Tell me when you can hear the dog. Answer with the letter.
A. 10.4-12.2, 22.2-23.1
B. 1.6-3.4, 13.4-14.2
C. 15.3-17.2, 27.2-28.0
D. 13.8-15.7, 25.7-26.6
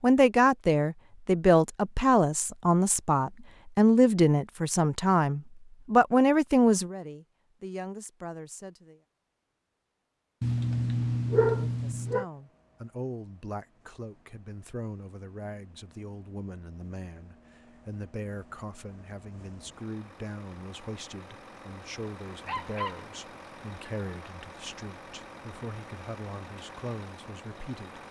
A.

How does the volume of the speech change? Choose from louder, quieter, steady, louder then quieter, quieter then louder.
quieter.